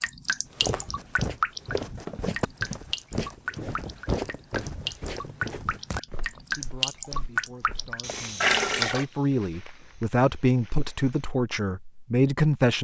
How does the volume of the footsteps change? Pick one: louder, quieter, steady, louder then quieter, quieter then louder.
quieter.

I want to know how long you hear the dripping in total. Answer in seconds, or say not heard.
9 s.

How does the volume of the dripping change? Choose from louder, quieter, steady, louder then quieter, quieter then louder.
quieter then louder.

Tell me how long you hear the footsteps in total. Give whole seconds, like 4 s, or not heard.
11 s.